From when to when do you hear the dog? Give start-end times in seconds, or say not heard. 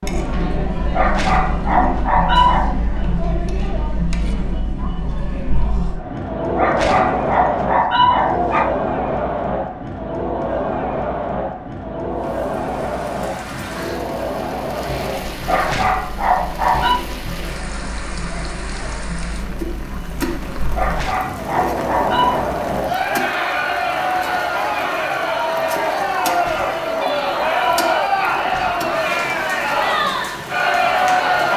0.9-2.8, 6.5-8.7, 15.4-17.0, 20.8-22.5, 26.2-28.9.